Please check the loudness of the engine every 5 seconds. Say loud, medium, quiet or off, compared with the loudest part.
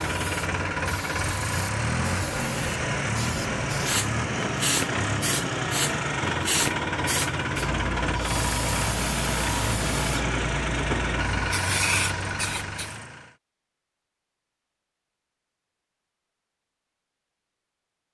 loud, loud, loud, off.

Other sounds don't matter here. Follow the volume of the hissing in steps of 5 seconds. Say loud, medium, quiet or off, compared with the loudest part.
loud, loud, loud, off.